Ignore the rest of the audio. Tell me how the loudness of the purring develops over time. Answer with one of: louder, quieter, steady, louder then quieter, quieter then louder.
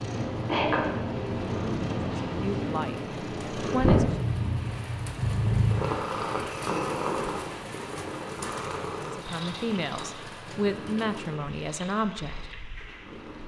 quieter.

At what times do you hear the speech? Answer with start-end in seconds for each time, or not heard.
2.2-4.0, 9.1-12.6.